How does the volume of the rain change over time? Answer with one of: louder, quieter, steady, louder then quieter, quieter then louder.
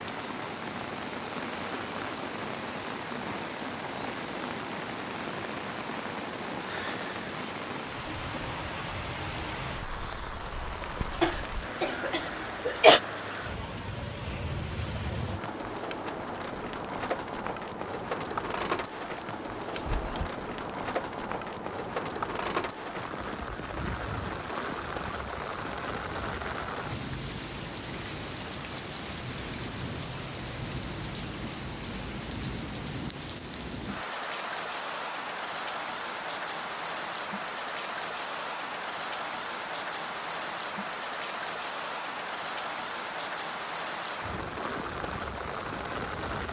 steady.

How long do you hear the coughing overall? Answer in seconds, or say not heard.
2 s.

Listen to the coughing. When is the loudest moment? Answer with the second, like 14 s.
13 s.